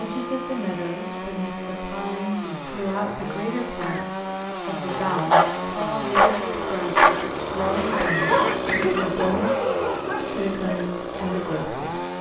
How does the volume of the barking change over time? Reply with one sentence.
The volume of the barking goes down.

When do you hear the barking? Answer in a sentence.
You can hear the barking from 4.8 to 10.8 s.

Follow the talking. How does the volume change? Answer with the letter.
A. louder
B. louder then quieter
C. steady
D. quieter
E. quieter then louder
C.